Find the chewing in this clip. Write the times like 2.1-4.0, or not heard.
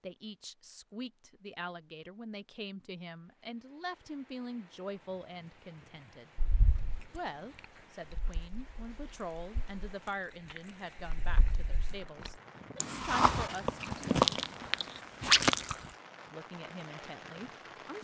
6.3-7.2, 8.1-15.8.